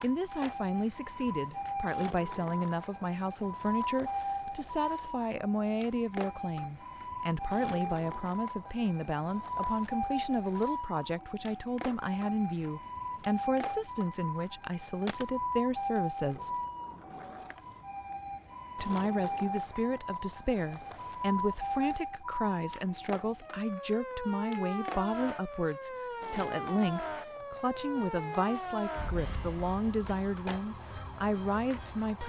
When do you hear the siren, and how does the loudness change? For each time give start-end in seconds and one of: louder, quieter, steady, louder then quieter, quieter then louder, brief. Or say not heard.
0.0-32.2 steady.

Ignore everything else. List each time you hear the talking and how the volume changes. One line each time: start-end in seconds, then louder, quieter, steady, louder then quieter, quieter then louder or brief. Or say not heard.
0.0-16.5 steady
18.8-32.2 steady.